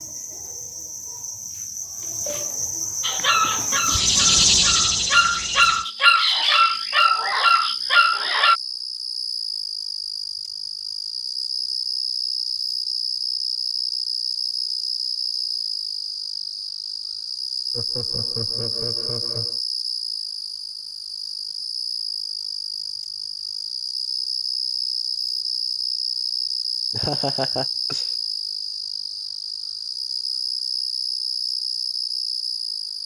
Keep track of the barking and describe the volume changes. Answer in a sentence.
The loudness of the barking goes up.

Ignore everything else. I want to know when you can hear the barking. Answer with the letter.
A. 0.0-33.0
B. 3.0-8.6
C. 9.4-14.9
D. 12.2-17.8
B.